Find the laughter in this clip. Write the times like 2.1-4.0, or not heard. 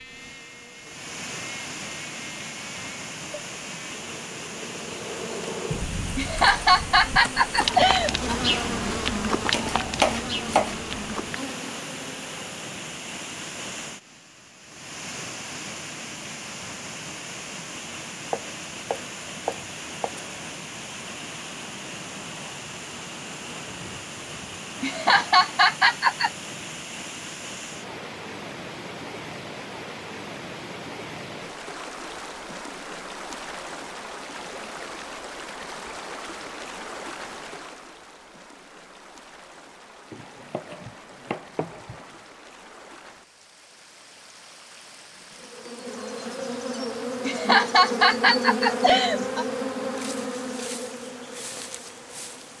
6.2-8.3, 24.8-26.3, 47.2-49.5.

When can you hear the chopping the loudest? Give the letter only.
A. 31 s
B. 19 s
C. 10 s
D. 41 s
C.